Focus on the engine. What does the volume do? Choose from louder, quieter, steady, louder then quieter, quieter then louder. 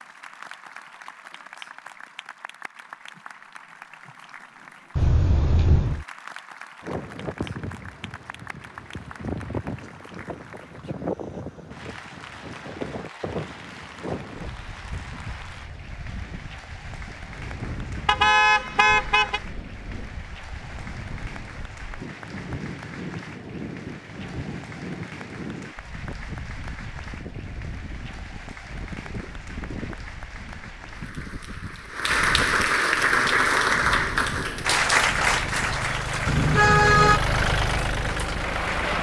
louder.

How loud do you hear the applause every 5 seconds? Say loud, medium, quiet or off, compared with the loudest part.
quiet, quiet, quiet, quiet, quiet, quiet, loud, loud.